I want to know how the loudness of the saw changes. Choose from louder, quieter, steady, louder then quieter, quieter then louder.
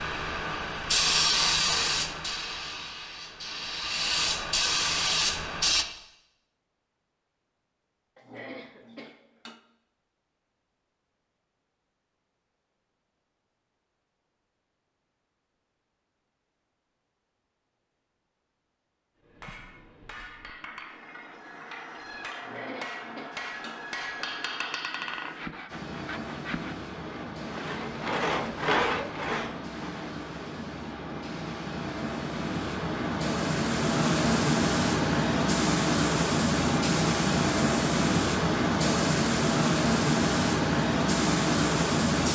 louder.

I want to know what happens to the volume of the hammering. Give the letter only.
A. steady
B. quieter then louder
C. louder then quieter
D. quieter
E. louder
E.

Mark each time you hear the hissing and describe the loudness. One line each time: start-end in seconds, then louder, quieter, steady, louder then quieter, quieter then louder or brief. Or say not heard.
0.0-5.8 quieter then louder
25.6-42.3 louder.